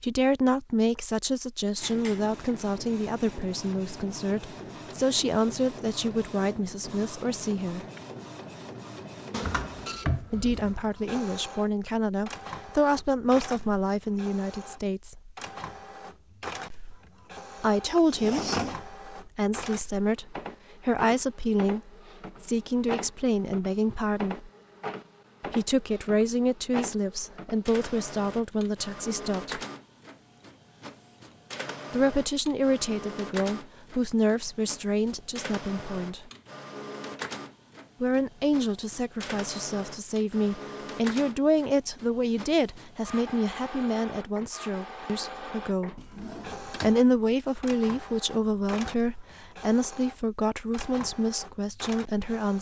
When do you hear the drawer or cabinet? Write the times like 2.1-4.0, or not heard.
9.3-10.9, 17.9-18.8, 46.0-47.0.